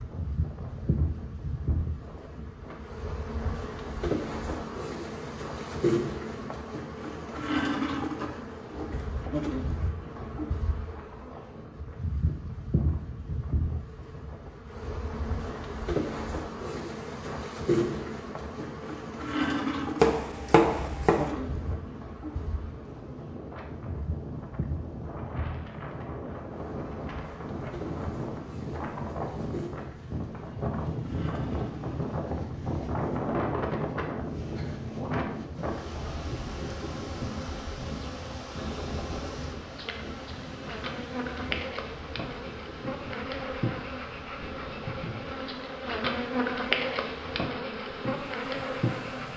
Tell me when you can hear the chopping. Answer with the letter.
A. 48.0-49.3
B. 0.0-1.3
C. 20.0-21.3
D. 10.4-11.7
C.